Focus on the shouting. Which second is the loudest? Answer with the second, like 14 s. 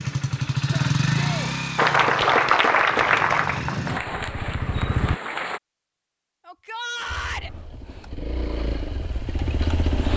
7 s.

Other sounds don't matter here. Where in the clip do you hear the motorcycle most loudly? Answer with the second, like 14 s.
1 s.